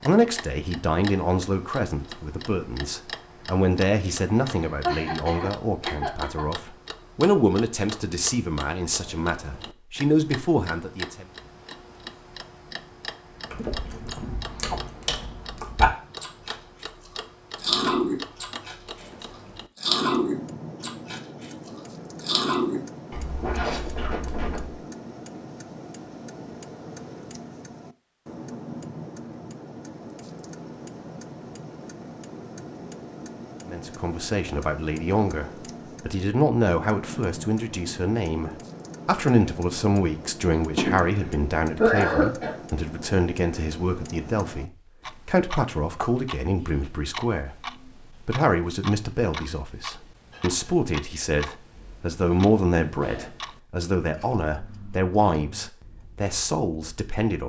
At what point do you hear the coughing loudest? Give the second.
42 s.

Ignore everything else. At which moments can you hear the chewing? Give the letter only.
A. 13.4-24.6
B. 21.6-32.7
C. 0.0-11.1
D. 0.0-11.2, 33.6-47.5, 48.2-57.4
A.